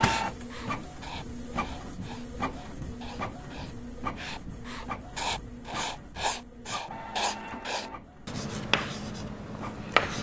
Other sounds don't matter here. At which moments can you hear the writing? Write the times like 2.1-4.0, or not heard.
0.0-10.1.